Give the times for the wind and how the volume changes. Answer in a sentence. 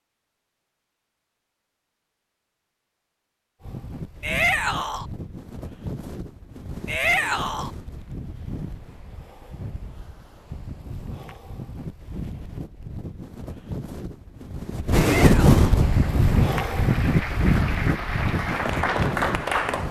The wind can be heard from 3.6 to 19.8 s, getting louder.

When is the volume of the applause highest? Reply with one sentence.
The volume of the applause peaks at 19 seconds.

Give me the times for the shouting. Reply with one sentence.
The shouting can be heard from 4.2 to 5.0 s, from 6.8 to 7.7 s and from 14.9 to 15.8 s.